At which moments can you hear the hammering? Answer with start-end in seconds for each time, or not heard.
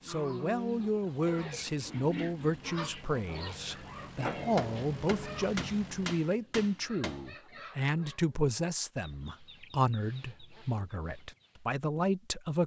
4.5-7.3.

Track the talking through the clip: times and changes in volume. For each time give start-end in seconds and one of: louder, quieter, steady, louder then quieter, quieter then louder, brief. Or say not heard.
0.1-12.6 steady.